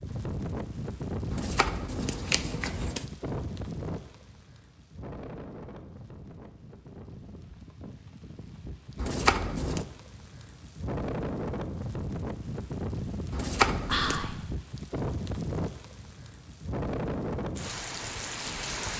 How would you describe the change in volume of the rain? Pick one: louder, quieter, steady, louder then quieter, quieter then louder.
quieter then louder.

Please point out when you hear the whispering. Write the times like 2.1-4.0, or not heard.
13.8-14.3.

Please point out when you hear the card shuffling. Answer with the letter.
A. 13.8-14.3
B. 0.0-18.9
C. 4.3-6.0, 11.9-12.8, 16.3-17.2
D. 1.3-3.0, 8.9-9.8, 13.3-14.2
D.